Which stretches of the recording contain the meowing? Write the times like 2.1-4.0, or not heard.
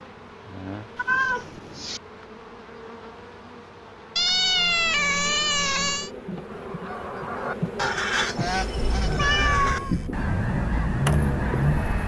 0.9-2.0, 4.2-6.1, 8.5-10.1.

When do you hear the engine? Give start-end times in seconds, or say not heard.
9.0-12.0.